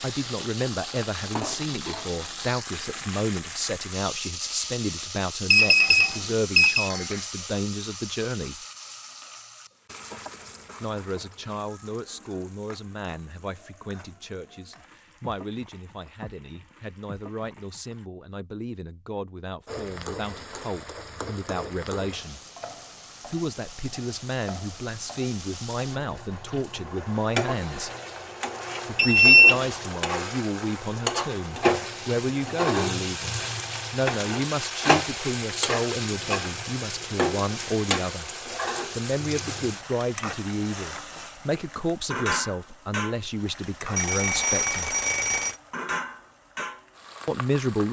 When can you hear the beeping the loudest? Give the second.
29 s.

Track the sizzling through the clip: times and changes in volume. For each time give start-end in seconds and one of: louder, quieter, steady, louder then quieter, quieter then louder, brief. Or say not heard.
0.0-18.1 quieter
19.6-47.8 louder then quieter.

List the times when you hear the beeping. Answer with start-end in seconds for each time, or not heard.
5.5-6.9, 28.9-29.6, 44.0-45.5.